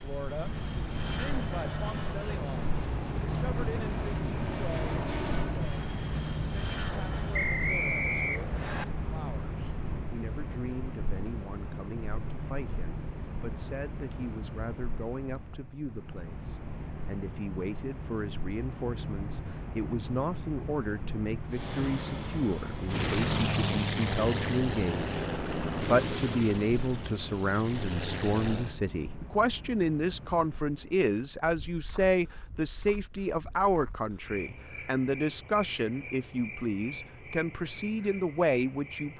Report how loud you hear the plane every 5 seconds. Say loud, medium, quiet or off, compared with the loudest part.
medium, medium, off, off, loud, loud, off, off.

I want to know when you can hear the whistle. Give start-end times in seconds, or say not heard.
7.3-8.8.